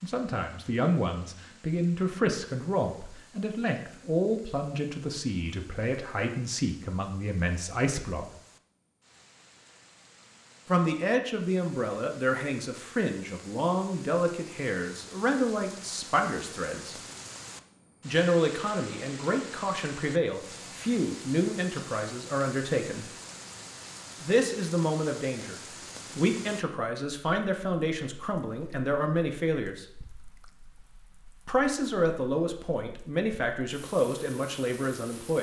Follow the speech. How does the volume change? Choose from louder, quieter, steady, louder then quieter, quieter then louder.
steady.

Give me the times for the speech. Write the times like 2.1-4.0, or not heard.
0.0-8.3, 10.7-17.0, 18.1-23.1, 24.2-29.9, 31.4-35.3.